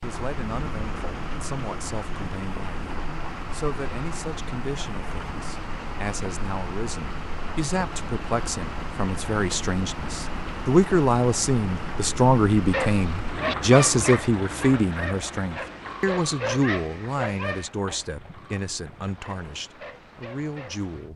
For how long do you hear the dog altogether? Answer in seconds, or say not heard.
8 s.